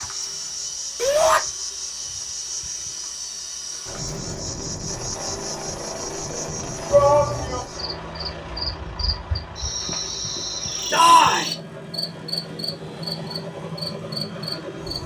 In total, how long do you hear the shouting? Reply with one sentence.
You can hear the shouting for 2 seconds altogether.